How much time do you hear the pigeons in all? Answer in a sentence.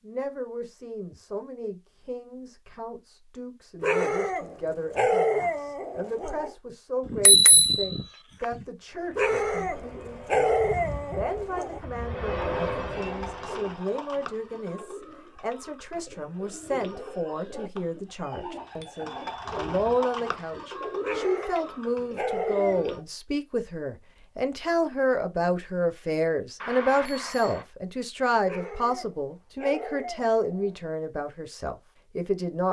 You can hear the pigeons for 11 seconds altogether.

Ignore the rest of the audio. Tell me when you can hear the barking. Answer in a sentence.
You can hear the barking from 3.8 to 6.5 s, from 9.2 to 11.8 s, from 21.0 to 22.9 s and from 28.4 to 30.9 s.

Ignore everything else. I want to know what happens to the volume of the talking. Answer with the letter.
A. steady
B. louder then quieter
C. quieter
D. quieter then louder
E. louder
E.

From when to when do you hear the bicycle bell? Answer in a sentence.
The bicycle bell can be heard from 7.0 to 8.4 s, from 18.4 to 20.0 s and from 26.6 to 27.6 s.